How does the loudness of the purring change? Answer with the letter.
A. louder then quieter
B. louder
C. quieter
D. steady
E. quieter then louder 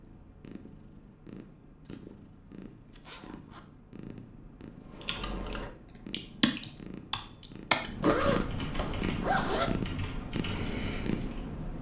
B.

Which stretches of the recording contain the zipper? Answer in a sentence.
The zipper can be heard from 1.9 to 3.6 s and from 8.0 to 9.7 s.